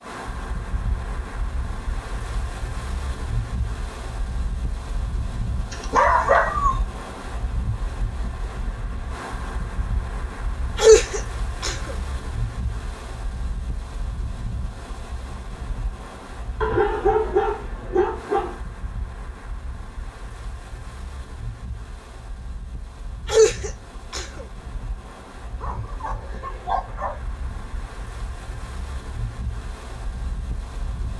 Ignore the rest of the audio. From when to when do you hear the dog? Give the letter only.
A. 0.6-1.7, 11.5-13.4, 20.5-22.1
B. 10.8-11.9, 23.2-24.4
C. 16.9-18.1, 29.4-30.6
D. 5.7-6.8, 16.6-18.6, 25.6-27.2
D.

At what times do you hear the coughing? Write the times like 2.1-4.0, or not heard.
10.8-11.9, 23.2-24.4.